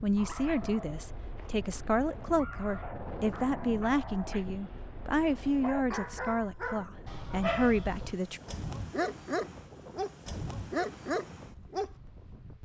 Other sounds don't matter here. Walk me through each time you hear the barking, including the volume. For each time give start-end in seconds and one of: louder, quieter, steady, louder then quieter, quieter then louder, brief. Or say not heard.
0.1-12.1 louder.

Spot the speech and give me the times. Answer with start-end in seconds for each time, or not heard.
0.0-8.4.